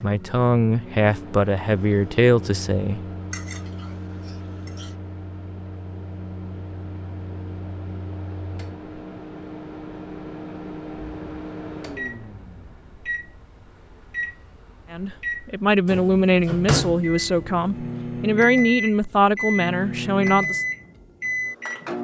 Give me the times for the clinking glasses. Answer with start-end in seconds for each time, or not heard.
3.3-5.0.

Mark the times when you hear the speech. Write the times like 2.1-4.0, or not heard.
0.0-3.0, 14.9-20.6.